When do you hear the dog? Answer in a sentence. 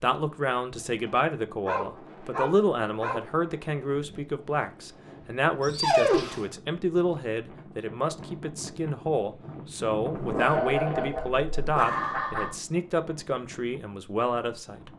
The dog can be heard from 1.6 to 3.2 s, from 5.6 to 6.5 s and from 10.2 to 12.6 s.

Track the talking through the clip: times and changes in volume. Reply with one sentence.
The talking can be heard from 0.0 to 14.9 s, at a steady volume.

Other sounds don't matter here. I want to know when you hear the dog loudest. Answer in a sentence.
The loudest moment of the dog is at 6 seconds.